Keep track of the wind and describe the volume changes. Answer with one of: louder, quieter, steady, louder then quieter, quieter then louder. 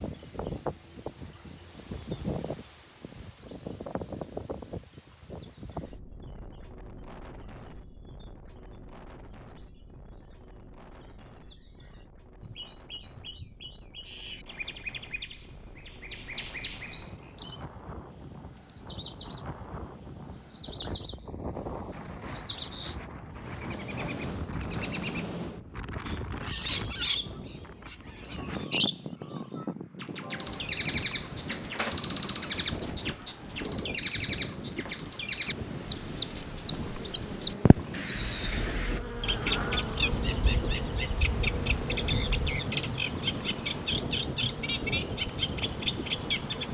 quieter then louder.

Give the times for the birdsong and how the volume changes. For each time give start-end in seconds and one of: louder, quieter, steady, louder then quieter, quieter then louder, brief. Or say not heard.
0.0-46.6 louder.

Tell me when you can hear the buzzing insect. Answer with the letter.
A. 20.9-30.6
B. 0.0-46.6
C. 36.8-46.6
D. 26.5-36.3
C.